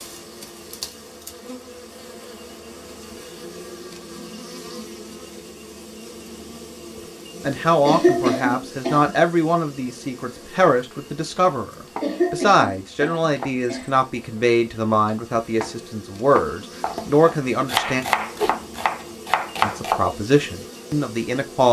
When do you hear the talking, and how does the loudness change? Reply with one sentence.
You can hear the talking from 7.4 to 18.1 s, at a steady volume; and briefly from 19.6 to 21.6 s.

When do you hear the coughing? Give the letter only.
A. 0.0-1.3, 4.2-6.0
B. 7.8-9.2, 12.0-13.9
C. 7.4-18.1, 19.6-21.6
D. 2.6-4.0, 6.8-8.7
B.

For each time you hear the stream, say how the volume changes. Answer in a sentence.
You can't hear the stream here.